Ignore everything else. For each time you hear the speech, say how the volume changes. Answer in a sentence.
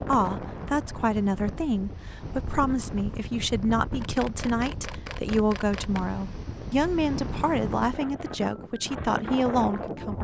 The speech can be heard from 0.1 to 10.2 s, at a steady volume.